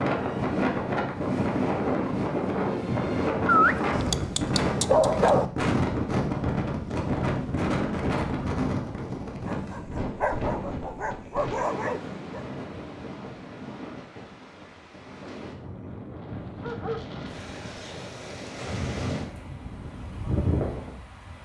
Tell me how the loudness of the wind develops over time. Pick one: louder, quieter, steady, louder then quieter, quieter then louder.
quieter then louder.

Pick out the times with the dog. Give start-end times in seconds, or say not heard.
3.5-5.5, 9.4-12.4, 16.3-17.8.